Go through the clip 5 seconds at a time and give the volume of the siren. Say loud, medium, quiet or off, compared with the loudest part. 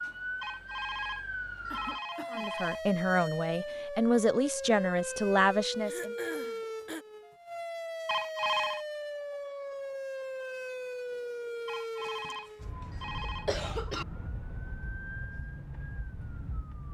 loud, loud, loud, medium.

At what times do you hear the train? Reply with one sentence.
You can't hear the train here.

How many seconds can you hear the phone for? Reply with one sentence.
The phone can be heard for 5 seconds in total.